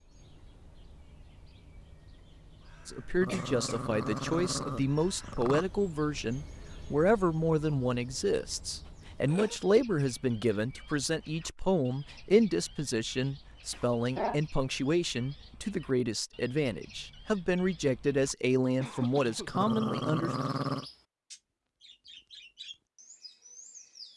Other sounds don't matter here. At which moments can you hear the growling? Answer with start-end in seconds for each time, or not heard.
3.2-5.7, 13.7-14.4, 19.5-20.9.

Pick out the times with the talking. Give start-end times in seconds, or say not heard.
2.9-20.4.